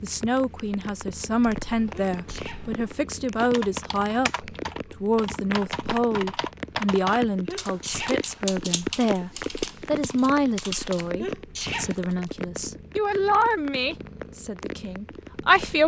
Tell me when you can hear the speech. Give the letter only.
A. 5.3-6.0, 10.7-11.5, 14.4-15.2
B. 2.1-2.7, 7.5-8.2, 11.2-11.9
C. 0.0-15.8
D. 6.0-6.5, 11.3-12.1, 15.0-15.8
C.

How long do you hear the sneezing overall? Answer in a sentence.
The sneezing can be heard for 2 seconds in total.